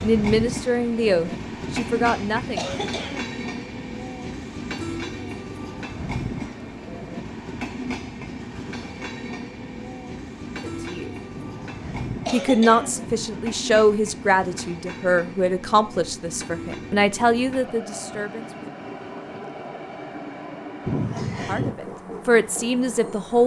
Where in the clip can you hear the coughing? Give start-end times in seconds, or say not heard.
1.6-3.3, 11.3-13.3, 20.9-21.8.